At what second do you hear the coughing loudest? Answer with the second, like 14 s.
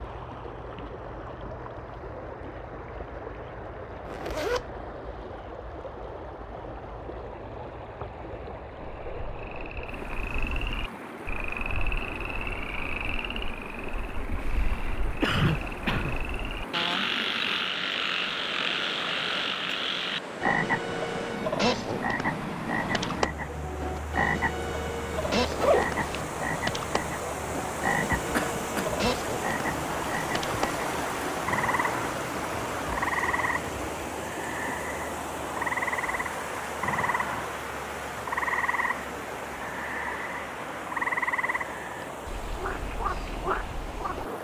15 s.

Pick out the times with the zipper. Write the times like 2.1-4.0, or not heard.
4.0-4.7, 25.3-26.2.